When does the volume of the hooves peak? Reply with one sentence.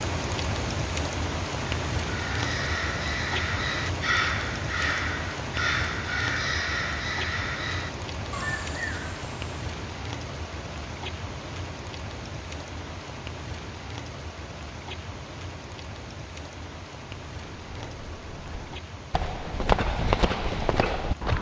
The loudest moment of the hooves is at 20 seconds.